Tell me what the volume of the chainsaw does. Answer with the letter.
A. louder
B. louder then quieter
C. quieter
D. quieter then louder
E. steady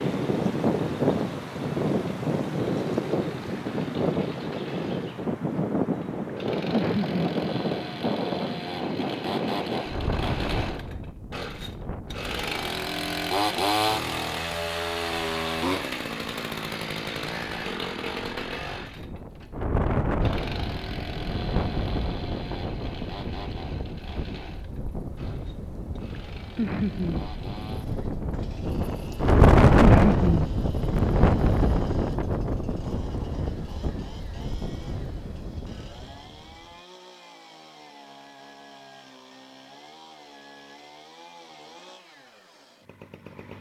B.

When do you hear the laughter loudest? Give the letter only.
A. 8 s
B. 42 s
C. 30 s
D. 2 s
C.